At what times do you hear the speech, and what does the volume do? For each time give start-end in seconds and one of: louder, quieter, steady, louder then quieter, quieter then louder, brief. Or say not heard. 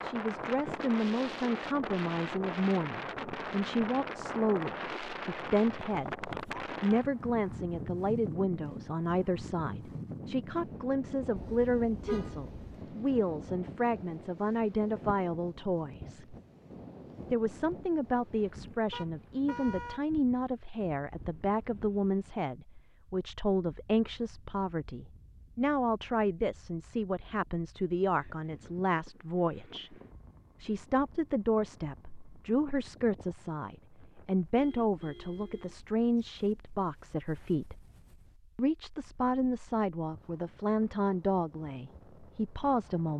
0.0-16.4 steady
17.3-29.9 steady
30.6-37.8 steady
38.5-43.1 steady.